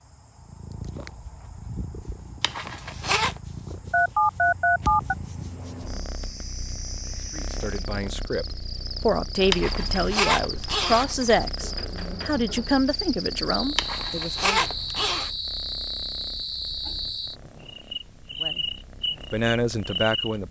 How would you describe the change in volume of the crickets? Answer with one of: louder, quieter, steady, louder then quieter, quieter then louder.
louder.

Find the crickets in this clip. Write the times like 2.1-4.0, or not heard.
0.0-20.4.